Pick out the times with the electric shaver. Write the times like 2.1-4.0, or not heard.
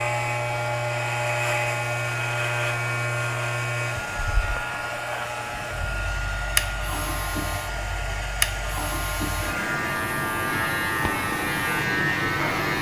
0.0-12.7.